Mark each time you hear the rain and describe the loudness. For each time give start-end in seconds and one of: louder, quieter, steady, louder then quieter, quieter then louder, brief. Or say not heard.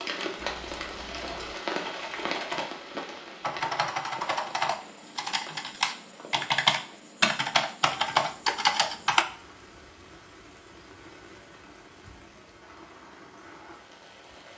0.0-14.5 quieter.